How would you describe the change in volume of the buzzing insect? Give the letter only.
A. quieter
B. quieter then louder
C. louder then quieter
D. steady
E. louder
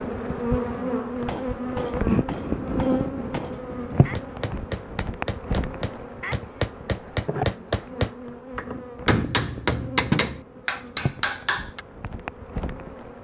A.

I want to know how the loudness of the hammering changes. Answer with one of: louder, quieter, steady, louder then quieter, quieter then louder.
louder.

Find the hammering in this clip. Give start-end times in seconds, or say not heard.
1.1-11.8.